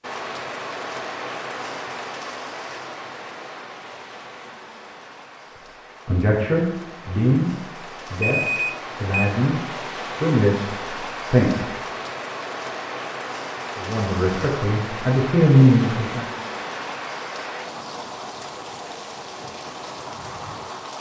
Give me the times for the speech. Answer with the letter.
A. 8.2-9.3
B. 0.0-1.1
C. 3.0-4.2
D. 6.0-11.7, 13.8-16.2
D.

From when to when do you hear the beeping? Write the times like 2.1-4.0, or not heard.
8.2-9.3.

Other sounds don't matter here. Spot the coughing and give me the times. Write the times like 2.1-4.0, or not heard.
not heard.